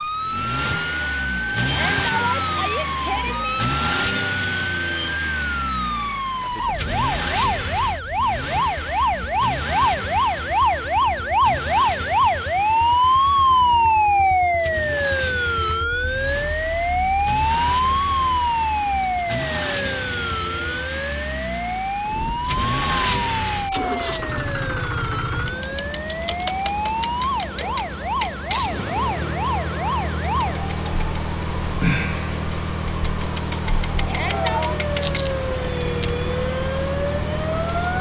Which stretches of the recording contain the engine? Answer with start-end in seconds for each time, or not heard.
0.0-37.9.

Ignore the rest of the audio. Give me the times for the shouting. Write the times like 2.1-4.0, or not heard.
1.6-3.6, 34.0-34.8.